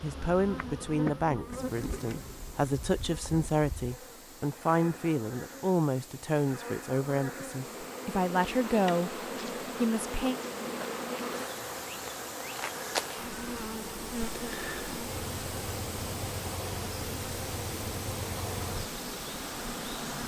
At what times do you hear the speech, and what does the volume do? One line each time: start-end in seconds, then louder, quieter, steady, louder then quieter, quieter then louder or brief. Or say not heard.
0.0-9.2 steady
9.8-10.4 brief.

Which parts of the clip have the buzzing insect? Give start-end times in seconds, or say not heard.
0.0-20.2.